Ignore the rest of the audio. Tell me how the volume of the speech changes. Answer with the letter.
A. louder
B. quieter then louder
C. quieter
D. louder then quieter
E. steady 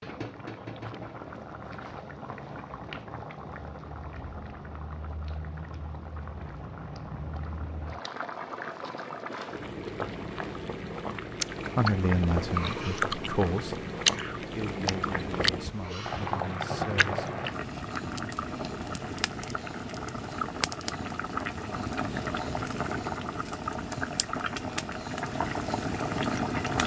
C.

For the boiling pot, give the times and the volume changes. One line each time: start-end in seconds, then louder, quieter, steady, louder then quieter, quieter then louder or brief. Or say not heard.
0.0-26.8 louder.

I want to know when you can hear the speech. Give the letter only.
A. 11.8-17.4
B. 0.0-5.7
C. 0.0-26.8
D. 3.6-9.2
A.